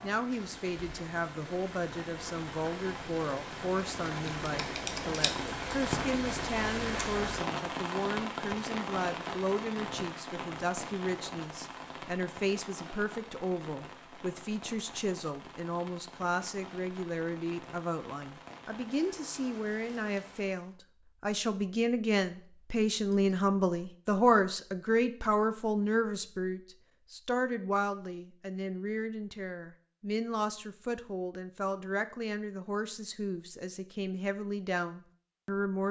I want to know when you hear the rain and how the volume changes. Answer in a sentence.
You can hear the rain from 0.0 to 20.8 s, getting louder then quieter.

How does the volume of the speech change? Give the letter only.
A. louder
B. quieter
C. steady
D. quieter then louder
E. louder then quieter
E.